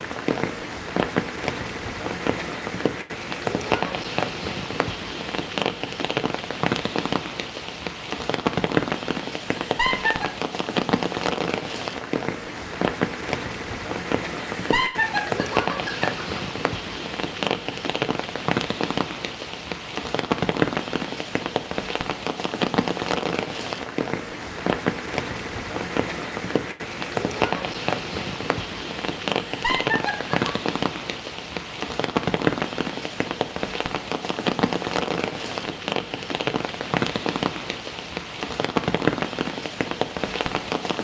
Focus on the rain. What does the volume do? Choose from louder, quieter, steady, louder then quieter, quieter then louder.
steady.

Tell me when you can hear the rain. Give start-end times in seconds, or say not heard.
0.0-40.9.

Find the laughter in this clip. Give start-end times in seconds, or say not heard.
9.6-10.2, 14.5-16.4, 29.4-30.5.